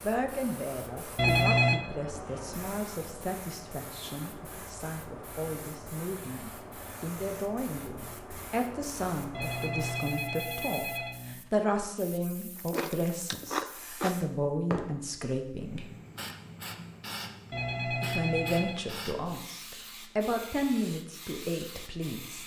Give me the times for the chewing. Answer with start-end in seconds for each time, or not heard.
12.6-14.2.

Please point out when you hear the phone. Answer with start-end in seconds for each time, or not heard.
1.1-1.8, 9.3-11.3, 17.5-18.9.